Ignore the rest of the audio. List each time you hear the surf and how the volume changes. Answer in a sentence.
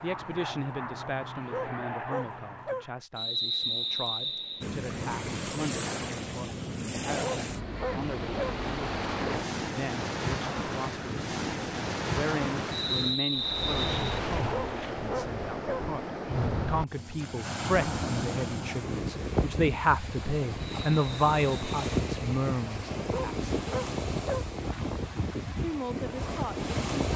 You can hear the surf from 4.6 to 27.1 s, at a steady volume.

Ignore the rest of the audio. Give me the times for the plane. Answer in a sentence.
The plane can be heard from 0.0 to 3.0 s.